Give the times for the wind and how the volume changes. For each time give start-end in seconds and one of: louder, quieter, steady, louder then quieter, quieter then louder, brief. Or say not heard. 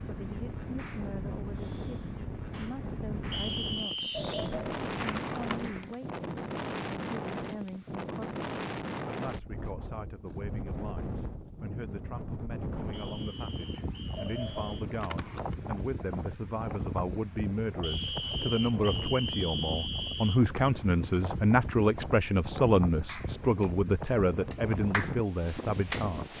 0.0-26.3 steady.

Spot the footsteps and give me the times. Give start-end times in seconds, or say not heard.
not heard.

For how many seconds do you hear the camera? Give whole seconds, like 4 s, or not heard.
3 s.